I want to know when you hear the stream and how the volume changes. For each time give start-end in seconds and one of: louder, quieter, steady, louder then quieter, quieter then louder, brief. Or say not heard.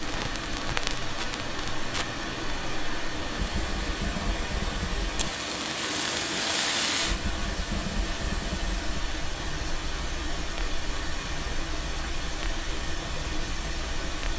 0.0-14.3 steady.